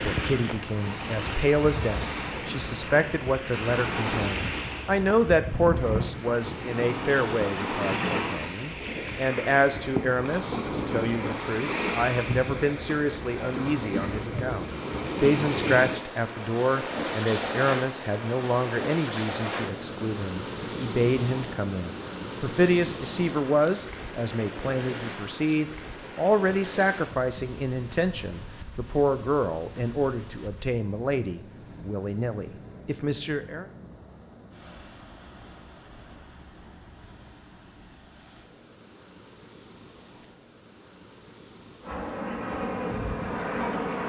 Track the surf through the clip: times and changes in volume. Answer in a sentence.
The surf can be heard from 0.0 to 44.0 s, getting quieter.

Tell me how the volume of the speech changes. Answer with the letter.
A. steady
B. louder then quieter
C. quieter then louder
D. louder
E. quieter
A.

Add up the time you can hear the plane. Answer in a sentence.
You can hear the plane for 2 seconds altogether.